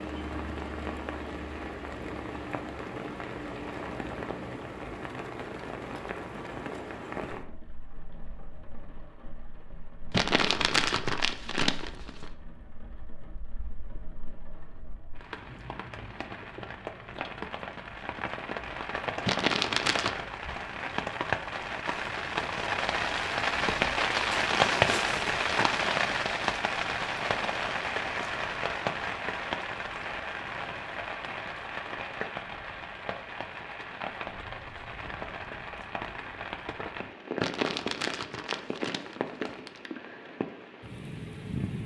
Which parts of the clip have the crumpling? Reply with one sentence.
The crumpling can be heard from 10.1 to 12.2 s, from 19.2 to 20.2 s and from 37.4 to 39.8 s.